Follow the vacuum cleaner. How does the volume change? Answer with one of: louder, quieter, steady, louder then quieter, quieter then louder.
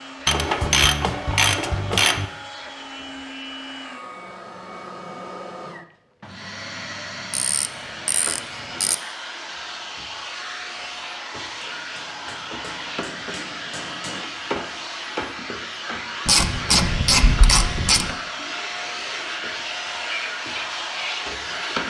louder.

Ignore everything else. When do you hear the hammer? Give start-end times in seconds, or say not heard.
11.5-14.2.